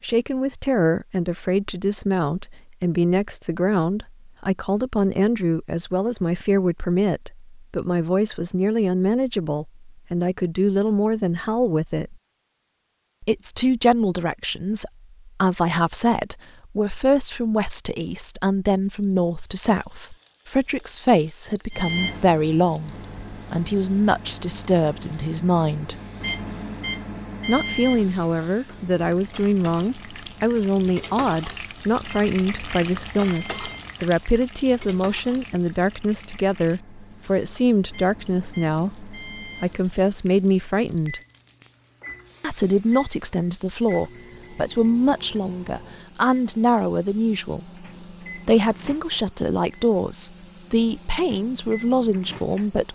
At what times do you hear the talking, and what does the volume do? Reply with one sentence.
You can hear the talking from 0.0 to 12.2 s, at a steady volume; from 13.2 to 25.9 s, at a steady volume; from 27.4 to 41.2 s, at a steady volume; and from 42.4 to 52.9 s, at a steady volume.